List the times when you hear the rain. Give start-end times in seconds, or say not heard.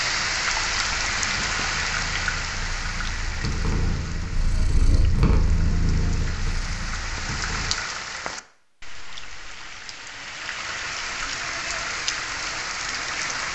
0.0-13.5.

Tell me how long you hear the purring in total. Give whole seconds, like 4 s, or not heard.
8 s.